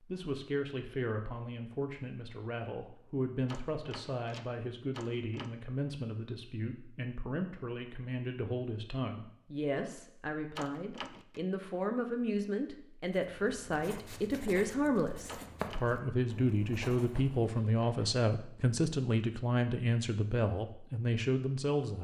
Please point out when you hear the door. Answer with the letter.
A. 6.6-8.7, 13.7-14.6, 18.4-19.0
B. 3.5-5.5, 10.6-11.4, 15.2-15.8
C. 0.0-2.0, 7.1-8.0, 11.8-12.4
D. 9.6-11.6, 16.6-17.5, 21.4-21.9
B.